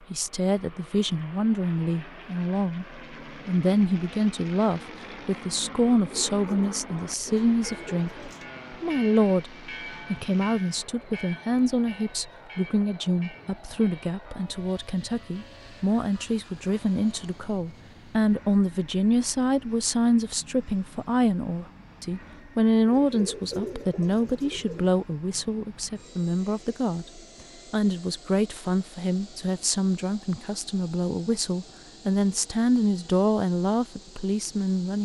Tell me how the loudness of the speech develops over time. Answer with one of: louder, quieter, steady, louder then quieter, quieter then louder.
steady.